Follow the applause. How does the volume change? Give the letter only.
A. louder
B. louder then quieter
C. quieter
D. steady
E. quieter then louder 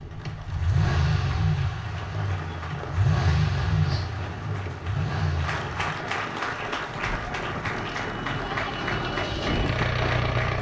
A.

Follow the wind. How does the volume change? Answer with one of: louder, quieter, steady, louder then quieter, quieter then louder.
louder.